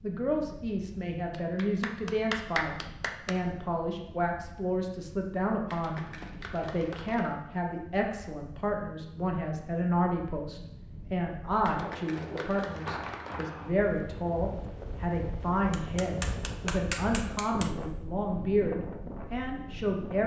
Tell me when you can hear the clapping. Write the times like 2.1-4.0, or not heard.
1.3-3.4, 5.7-7.3, 11.7-13.5, 15.7-17.7.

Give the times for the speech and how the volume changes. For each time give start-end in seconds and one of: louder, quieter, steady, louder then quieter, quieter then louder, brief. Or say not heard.
0.0-20.2 steady.